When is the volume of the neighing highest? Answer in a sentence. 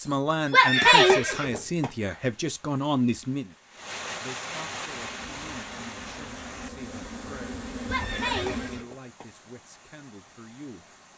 The volume of the neighing peaks at 1 second.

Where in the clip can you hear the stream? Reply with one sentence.
The stream can be heard from 1.9 to 11.1 s.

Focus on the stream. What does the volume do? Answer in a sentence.
The volume of the stream goes up, then down.